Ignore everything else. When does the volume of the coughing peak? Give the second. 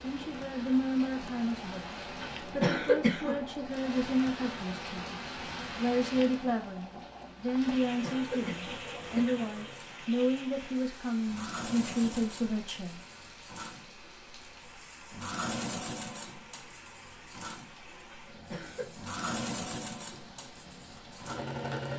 3 s.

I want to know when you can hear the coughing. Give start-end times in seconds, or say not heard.
2.2-3.5, 7.8-9.4, 18.1-18.9.